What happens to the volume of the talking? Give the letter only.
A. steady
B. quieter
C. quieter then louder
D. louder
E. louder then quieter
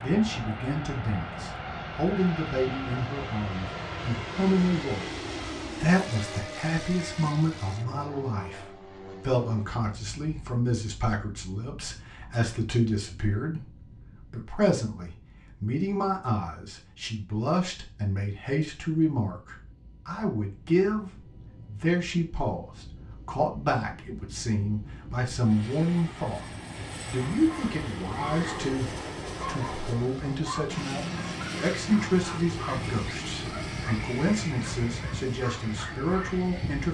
A.